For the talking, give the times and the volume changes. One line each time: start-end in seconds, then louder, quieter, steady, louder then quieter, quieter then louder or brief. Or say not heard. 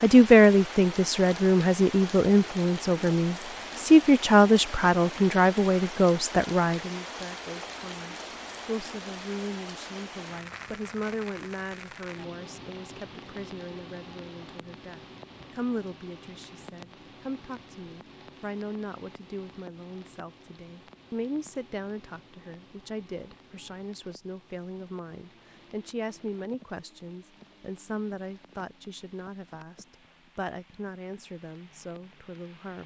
0.0-32.8 quieter.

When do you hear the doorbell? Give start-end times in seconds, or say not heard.
not heard.